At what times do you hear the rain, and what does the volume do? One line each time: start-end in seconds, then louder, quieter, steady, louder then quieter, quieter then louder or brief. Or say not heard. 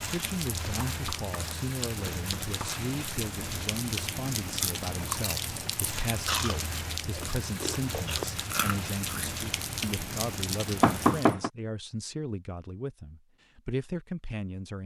0.0-11.3 steady.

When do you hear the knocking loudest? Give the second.
11 s.